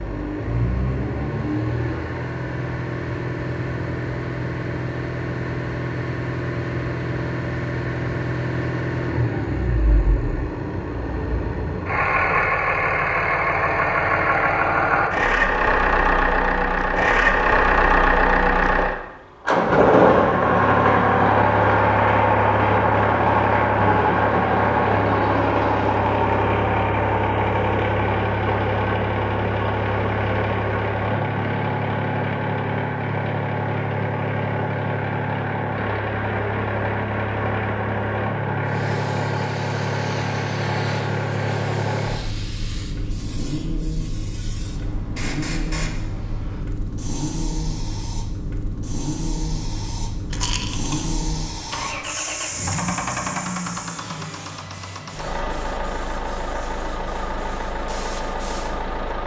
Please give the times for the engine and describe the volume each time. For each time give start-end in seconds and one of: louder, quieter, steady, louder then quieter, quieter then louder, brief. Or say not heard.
0.0-59.2 louder then quieter.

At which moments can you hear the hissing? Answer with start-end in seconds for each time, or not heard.
38.6-59.2.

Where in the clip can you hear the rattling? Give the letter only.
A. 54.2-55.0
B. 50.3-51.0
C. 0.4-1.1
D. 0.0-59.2
B.